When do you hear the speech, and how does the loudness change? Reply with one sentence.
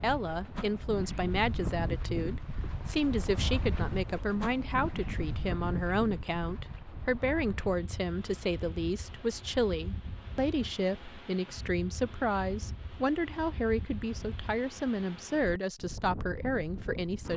The speech can be heard from 0.0 to 17.3 s, at a steady volume.